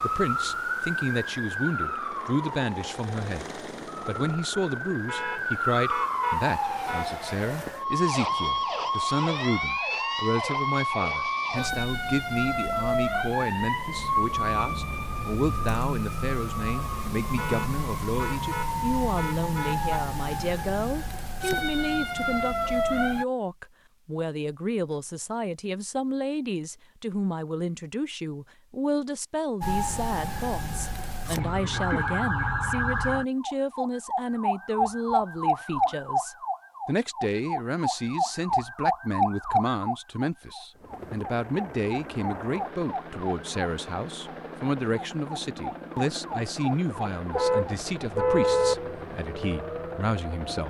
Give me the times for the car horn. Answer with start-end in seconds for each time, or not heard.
5.0-7.2, 17.4-20.0, 47.3-48.8.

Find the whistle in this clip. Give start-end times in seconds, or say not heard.
not heard.